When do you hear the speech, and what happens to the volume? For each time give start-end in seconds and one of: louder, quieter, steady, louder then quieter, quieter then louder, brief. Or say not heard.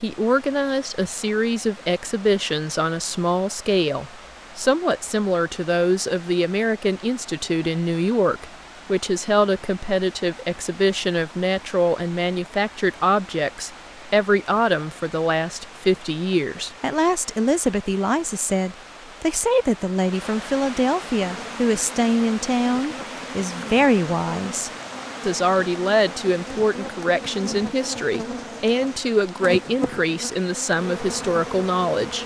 0.0-32.2 steady.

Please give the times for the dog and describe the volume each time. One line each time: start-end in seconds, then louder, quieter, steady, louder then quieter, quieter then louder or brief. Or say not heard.
not heard.